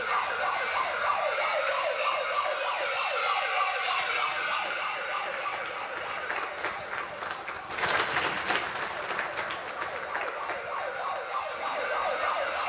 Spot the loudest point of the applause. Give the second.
8 s.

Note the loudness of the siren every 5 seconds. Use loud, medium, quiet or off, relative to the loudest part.
loud, medium, loud.